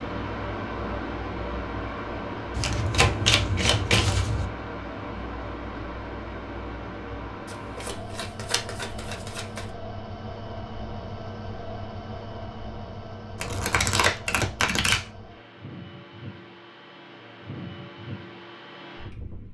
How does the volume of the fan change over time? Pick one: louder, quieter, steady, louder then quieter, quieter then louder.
quieter.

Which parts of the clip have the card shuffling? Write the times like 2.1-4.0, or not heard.
2.5-4.5, 7.5-9.7, 13.4-15.1.